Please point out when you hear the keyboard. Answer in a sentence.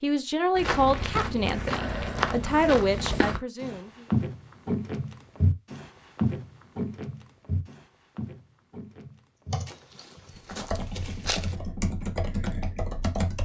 You can hear the keyboard from 9.5 to 13.4 s.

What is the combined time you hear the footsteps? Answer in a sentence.
The footsteps can be heard for 11 seconds in total.